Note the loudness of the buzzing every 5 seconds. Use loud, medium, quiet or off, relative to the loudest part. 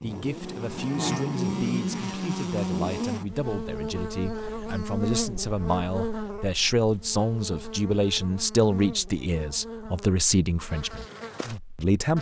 loud, medium, medium.